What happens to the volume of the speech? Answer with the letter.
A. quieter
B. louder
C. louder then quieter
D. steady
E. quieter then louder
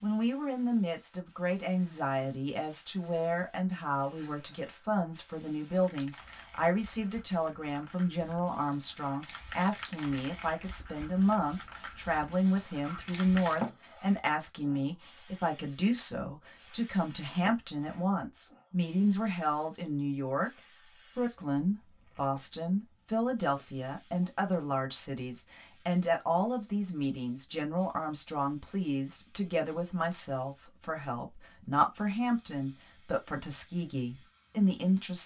D.